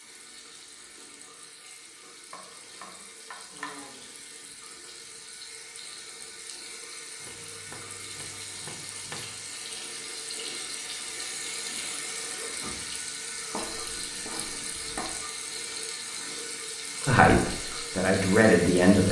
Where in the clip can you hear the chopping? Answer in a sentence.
The chopping can be heard from 2.3 to 4.1 s, from 7.2 to 9.4 s and from 13.5 to 15.2 s.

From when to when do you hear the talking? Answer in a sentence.
The talking can be heard from 17.1 to 19.0 s.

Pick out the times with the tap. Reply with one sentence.
You can hear the tap from 0.0 to 19.0 s.